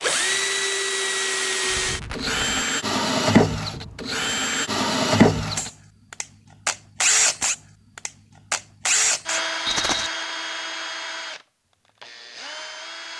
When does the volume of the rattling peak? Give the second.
10 s.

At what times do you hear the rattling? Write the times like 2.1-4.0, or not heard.
1.7-2.6, 9.7-10.1.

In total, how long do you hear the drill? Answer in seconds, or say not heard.
13 s.